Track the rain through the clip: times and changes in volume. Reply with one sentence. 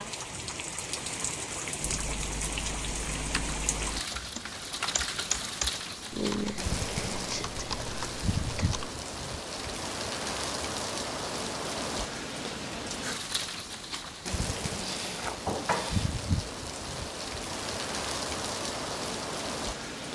You can hear the rain from 0.0 to 20.0 s, at a steady volume.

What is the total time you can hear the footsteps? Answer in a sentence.
You can't hear the footsteps here.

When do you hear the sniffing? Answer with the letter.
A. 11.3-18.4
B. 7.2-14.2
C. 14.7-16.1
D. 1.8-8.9
C.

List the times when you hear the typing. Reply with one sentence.
The typing can be heard from 1.8 to 8.9 s.